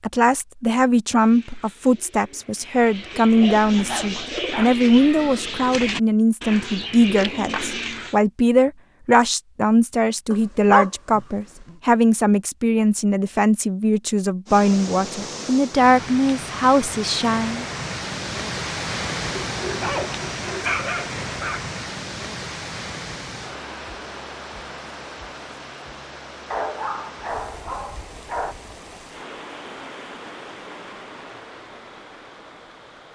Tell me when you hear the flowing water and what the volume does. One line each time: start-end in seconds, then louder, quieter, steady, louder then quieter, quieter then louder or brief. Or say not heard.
14.4-33.1 quieter.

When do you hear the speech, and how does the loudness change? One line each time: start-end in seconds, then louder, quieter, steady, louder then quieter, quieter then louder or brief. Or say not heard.
0.0-17.6 steady.